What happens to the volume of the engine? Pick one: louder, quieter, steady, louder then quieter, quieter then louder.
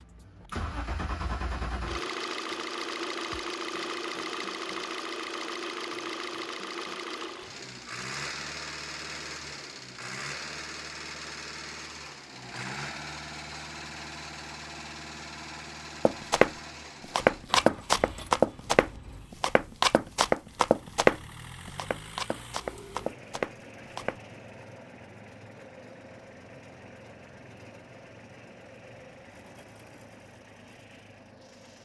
quieter.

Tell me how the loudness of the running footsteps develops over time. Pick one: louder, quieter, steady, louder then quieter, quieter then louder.
quieter.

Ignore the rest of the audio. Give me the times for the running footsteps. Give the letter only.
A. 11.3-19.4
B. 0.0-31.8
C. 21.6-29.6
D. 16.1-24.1
D.